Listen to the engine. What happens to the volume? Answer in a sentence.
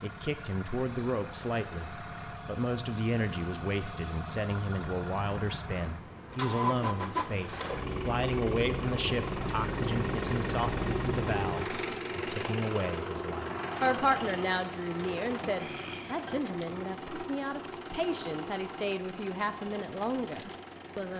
The volume of the engine goes up, then down.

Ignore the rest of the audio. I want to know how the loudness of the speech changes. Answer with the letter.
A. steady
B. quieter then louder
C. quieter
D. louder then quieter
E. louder
A.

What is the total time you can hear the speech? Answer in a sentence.
The speech can be heard for 21 seconds in total.